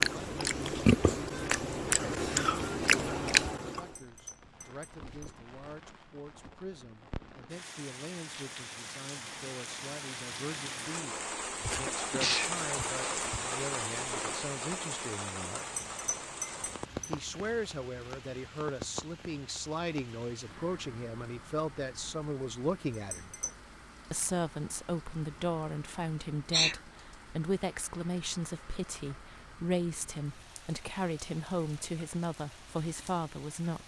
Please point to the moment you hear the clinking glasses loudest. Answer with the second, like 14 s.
16 s.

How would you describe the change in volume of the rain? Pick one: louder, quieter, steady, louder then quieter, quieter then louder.
louder then quieter.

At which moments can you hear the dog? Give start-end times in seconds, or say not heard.
not heard.